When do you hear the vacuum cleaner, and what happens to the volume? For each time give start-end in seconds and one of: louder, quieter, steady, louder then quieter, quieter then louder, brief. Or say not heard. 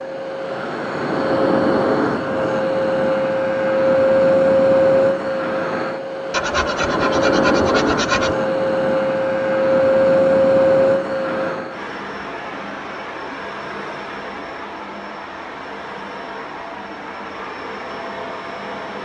0.0-19.0 quieter.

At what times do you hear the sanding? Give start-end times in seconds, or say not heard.
6.3-8.3.